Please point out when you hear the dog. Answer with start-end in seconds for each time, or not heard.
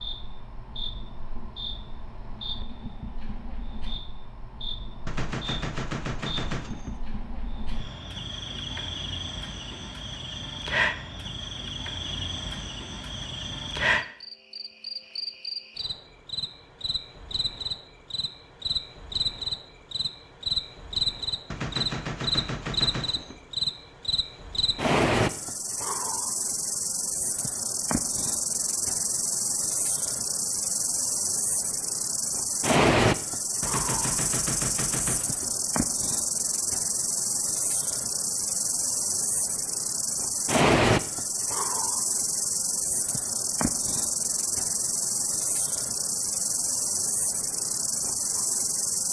not heard.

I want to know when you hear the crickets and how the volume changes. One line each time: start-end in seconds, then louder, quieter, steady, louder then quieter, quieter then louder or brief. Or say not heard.
0.0-49.0 louder.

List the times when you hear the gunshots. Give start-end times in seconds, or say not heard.
5.0-7.0, 21.5-23.4, 33.6-35.5.